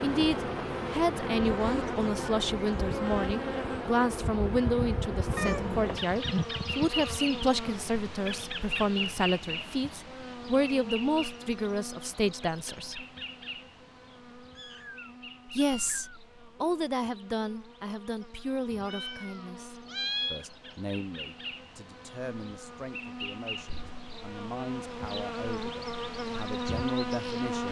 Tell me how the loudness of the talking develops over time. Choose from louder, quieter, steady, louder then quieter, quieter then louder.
quieter.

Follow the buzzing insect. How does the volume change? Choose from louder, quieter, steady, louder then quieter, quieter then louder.
quieter then louder.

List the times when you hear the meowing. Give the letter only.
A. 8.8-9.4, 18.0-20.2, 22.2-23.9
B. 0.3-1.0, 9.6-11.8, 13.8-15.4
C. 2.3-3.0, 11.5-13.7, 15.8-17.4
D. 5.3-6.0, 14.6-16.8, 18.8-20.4
D.